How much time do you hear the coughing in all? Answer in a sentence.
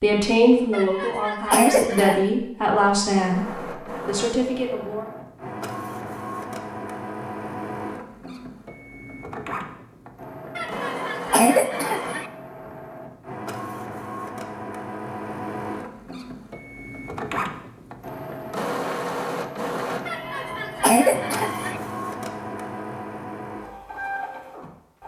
The coughing can be heard for 5 seconds in total.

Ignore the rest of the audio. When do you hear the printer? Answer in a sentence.
The printer can be heard from 3.0 to 25.0 s.